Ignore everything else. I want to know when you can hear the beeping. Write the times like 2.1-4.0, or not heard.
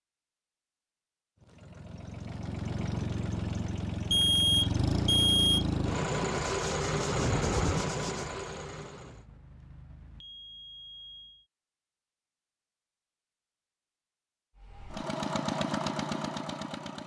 4.1-5.7, 9.0-11.4.